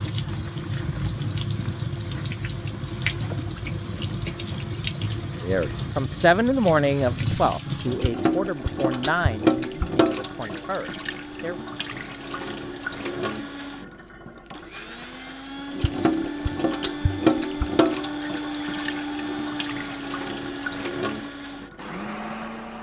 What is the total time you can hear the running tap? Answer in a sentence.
You can hear the running tap for 23 seconds altogether.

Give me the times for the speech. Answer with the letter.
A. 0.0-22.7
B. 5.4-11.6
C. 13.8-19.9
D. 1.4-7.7
B.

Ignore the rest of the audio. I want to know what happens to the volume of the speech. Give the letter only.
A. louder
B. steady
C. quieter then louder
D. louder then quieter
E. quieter
E.